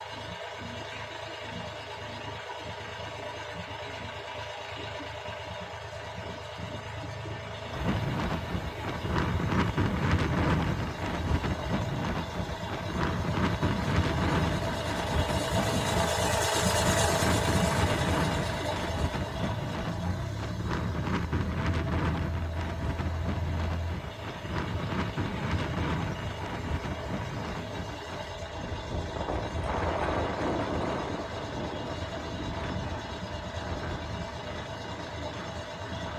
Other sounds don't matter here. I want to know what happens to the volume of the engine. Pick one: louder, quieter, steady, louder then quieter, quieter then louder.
louder then quieter.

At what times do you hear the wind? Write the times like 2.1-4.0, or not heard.
7.7-36.1.